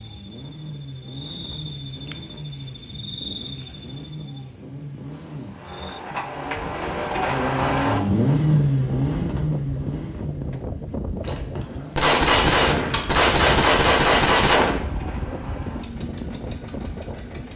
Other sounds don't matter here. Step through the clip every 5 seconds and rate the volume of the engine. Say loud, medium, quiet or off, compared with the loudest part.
quiet, loud, quiet, quiet.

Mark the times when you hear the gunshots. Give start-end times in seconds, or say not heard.
11.2-14.8.